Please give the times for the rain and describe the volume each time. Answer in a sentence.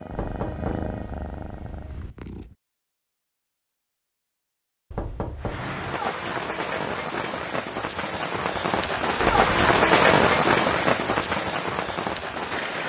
The rain can be heard from 5.3 to 12.8 s, getting louder then quieter.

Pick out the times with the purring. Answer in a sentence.
You can hear the purring from 0.0 to 2.5 s.